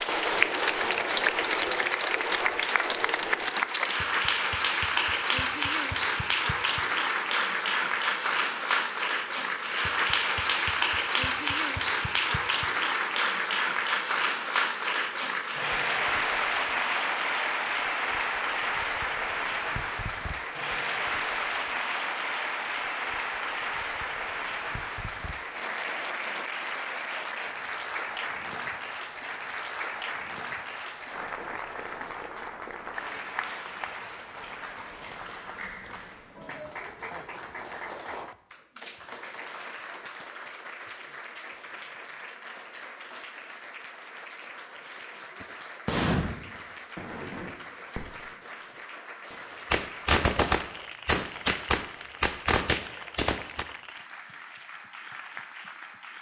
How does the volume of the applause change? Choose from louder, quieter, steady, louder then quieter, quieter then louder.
quieter.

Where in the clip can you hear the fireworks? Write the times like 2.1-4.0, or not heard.
0.0-3.9, 45.4-48.5, 49.3-53.6.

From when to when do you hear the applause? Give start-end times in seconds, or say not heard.
0.0-56.1.